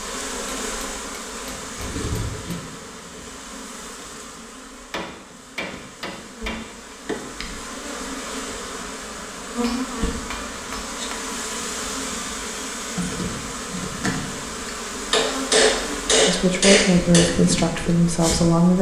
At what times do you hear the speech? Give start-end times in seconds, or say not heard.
16.2-18.7.